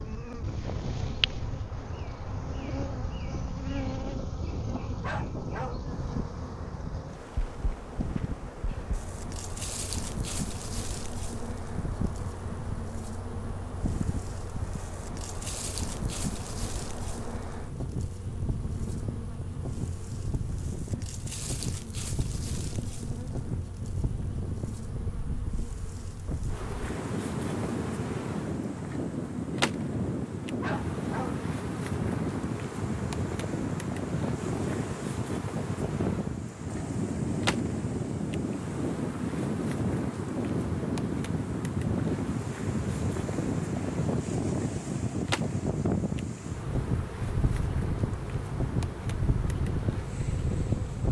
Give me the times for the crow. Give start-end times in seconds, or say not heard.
not heard.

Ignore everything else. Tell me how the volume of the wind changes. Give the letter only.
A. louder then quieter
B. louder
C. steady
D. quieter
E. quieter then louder
B.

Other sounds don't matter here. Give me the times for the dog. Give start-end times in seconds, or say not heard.
5.0-5.8, 30.6-31.4.